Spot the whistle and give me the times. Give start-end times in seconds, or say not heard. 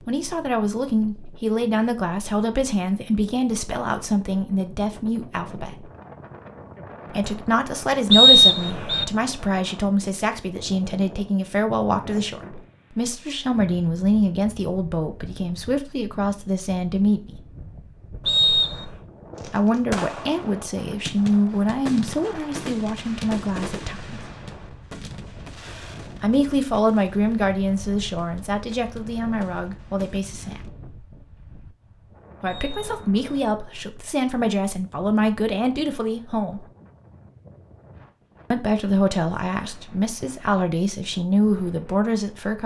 8.1-9.1, 18.2-18.9, 32.5-33.4.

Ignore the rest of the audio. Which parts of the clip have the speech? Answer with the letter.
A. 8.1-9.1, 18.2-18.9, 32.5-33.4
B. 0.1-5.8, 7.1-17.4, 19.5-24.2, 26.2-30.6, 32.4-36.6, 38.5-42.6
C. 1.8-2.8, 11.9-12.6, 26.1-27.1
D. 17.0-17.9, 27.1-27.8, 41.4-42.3
B.